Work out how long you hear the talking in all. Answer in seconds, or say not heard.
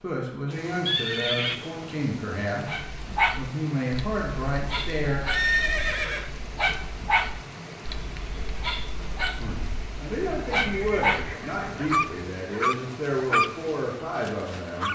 11 s.